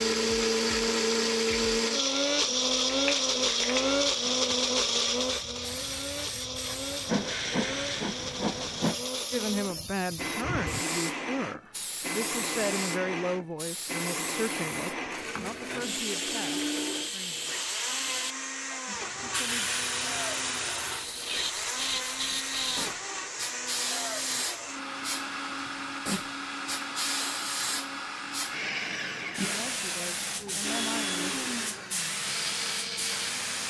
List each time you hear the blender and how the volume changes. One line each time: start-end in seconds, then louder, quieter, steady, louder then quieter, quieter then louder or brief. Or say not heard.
0.0-33.6 quieter.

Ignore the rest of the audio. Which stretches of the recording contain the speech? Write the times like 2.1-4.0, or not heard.
9.3-17.6, 19.2-19.7, 29.4-31.4.